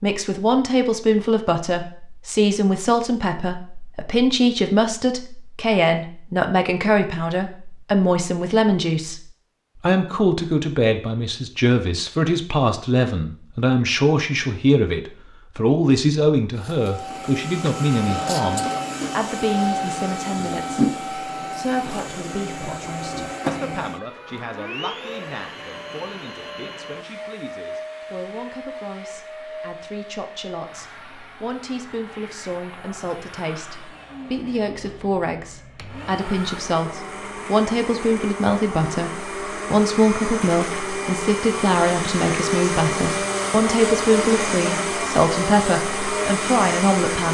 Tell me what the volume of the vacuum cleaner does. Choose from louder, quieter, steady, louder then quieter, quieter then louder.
quieter then louder.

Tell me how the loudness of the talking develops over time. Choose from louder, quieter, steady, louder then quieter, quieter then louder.
quieter then louder.